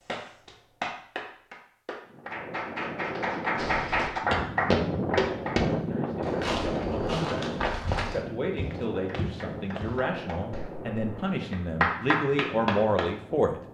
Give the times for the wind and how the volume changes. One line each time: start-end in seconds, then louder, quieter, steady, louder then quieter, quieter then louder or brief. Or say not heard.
2.0-13.6 louder then quieter.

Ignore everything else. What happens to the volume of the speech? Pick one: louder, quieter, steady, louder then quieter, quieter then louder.
louder.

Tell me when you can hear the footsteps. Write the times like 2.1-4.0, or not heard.
3.5-10.0.